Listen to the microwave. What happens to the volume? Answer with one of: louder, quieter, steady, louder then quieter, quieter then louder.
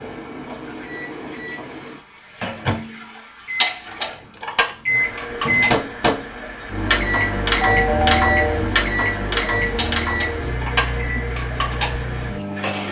louder then quieter.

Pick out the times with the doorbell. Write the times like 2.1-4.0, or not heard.
7.7-8.7.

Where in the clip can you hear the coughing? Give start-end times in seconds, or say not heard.
not heard.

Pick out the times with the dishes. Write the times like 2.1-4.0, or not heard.
3.6-5.8, 9.8-12.8.